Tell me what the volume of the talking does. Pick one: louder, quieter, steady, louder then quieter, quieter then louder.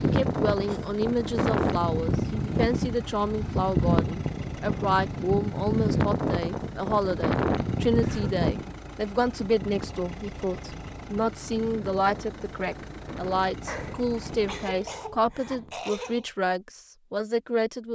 steady.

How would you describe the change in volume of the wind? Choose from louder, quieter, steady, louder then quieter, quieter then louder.
quieter.